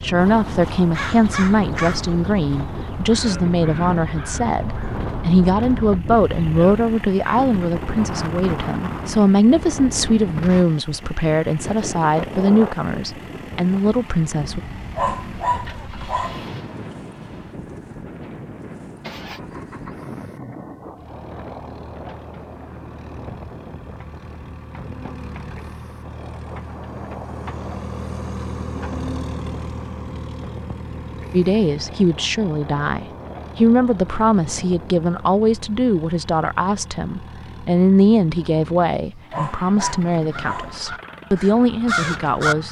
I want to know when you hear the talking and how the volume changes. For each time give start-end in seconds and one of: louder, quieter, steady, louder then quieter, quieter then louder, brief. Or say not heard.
0.0-14.6 steady
31.3-42.6 steady.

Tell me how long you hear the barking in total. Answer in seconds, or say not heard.
3 s.